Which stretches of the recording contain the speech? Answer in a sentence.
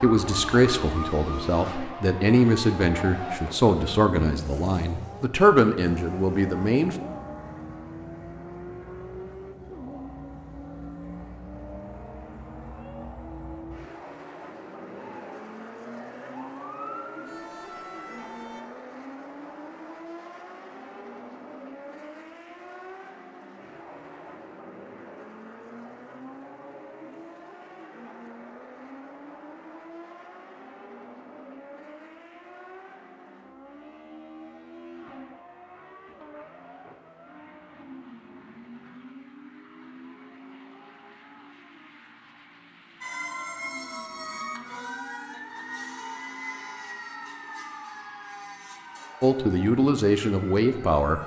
The speech can be heard from 0.0 to 7.0 s and from 49.2 to 51.2 s.